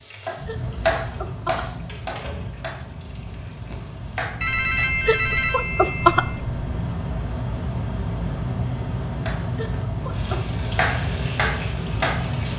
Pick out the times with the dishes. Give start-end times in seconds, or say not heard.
not heard.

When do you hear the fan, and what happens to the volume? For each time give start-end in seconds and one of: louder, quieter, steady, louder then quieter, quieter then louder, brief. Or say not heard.
0.0-12.5 louder.